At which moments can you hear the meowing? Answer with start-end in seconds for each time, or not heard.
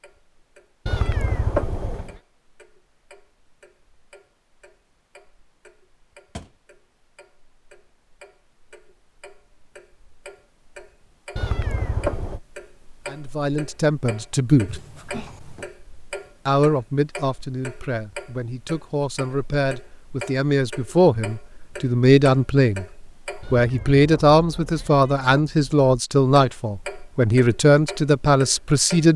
0.8-2.2, 11.3-12.4, 23.4-25.4.